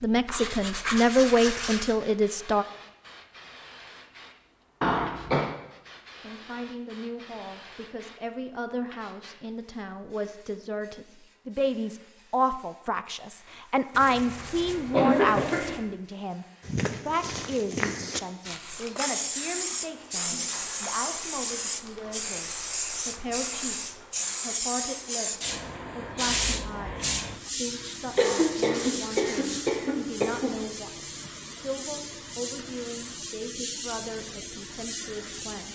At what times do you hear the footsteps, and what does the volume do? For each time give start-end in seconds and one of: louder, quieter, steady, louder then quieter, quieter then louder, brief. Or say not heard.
16.6-24.1 quieter.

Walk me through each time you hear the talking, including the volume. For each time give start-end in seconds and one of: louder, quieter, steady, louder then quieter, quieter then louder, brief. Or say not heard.
0.0-2.6 brief
6.2-35.7 louder then quieter.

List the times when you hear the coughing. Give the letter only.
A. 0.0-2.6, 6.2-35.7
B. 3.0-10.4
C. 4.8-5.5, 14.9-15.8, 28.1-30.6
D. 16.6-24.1
C.